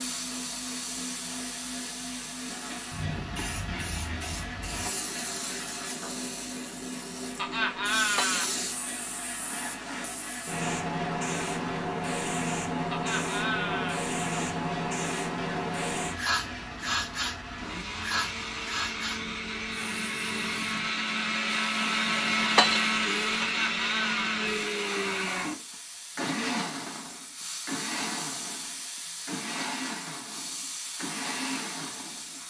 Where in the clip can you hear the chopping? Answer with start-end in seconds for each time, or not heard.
not heard.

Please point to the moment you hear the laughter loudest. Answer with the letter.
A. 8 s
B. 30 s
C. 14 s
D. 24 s
A.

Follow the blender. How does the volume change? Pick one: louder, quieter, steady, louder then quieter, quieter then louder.
louder then quieter.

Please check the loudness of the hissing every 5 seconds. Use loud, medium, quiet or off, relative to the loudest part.
medium, medium, loud, loud, quiet, medium, medium.